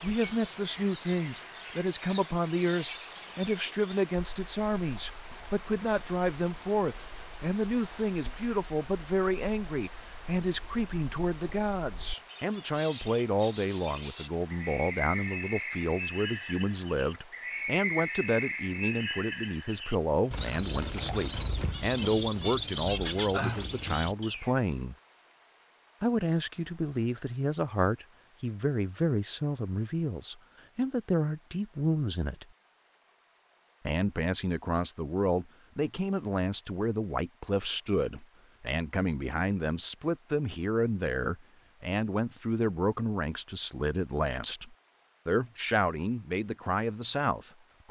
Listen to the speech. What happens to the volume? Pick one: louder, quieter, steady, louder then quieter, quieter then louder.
steady.